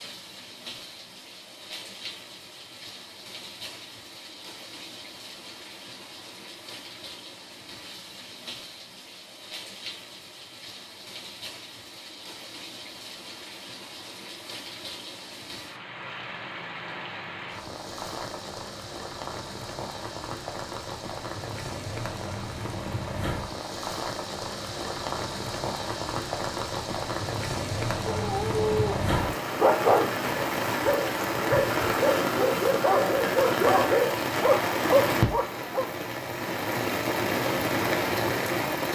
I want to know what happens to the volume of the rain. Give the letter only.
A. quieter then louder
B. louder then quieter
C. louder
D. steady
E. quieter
C.